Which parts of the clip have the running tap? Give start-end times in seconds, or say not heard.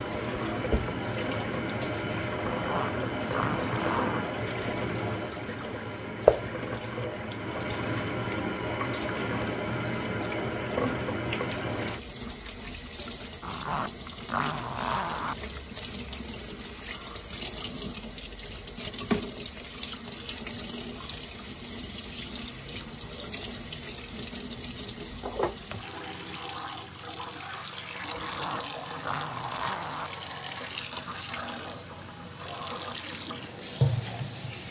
0.0-34.6.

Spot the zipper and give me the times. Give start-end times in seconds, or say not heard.
2.5-4.3, 13.4-15.3, 28.1-30.1.